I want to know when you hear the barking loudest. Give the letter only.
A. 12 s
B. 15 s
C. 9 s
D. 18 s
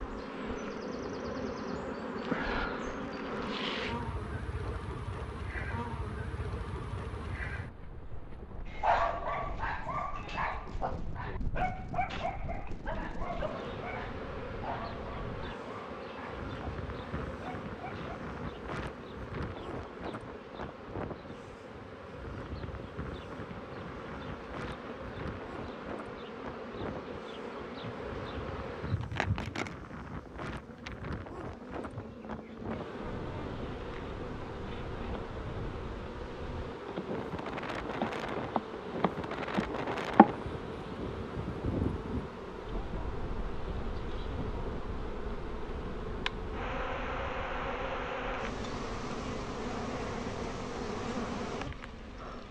C.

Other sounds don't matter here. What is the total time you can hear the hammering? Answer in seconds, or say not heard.
not heard.